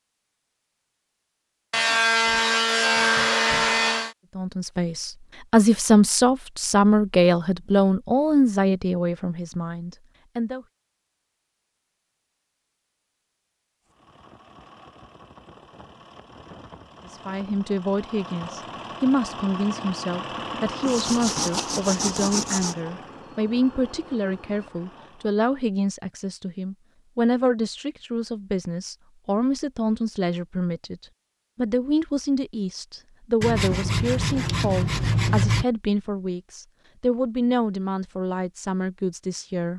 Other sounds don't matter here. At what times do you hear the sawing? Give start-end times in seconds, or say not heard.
1.7-4.1, 20.9-22.8, 33.4-35.6.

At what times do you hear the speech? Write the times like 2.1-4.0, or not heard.
4.3-10.7, 17.1-39.7.